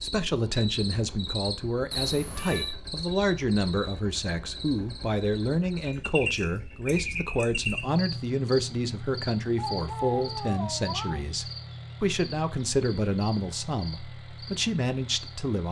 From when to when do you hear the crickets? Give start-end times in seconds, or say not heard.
0.0-15.5.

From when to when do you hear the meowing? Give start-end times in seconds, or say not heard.
1.9-2.8, 9.6-11.2.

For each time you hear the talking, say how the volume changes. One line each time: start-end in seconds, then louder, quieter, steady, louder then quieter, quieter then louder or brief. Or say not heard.
0.0-15.6 steady.